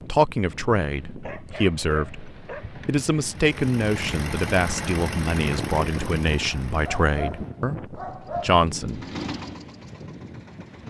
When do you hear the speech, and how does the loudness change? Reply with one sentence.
The speech can be heard from 0.1 to 9.0 s, at a steady volume.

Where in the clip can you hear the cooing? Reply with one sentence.
The cooing can't be heard in this clip.